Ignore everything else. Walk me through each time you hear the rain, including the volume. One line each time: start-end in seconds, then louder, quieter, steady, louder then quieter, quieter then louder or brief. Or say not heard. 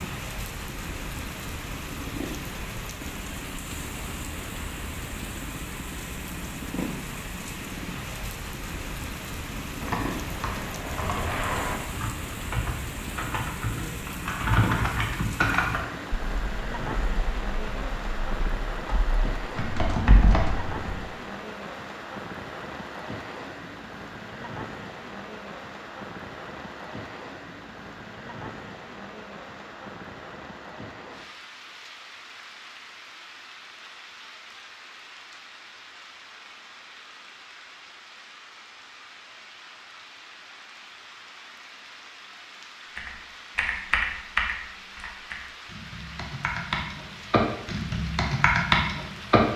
0.0-49.5 quieter.